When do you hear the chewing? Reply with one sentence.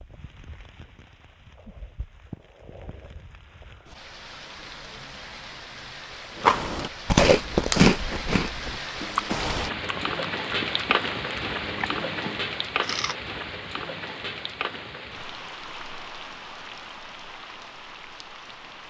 The chewing can be heard from 6.4 to 13.2 s.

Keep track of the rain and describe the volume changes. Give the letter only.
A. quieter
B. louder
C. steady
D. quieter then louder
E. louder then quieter
E.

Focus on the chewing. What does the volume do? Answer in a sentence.
The volume of the chewing goes down.